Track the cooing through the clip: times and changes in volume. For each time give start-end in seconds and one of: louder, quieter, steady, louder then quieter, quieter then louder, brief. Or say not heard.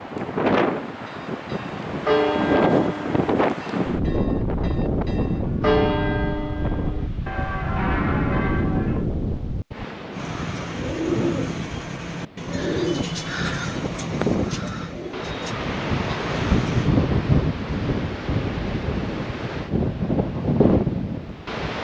10.1-16.9 quieter.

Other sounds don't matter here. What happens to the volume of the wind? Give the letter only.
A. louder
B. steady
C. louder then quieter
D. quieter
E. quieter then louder
E.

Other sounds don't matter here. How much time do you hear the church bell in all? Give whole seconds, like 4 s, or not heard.
8 s.